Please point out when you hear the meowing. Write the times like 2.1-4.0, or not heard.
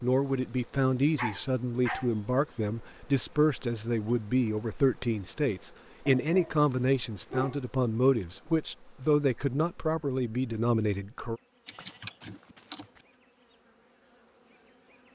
not heard.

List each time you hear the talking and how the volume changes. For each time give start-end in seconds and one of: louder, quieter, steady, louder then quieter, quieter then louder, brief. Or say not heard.
0.0-11.4 steady.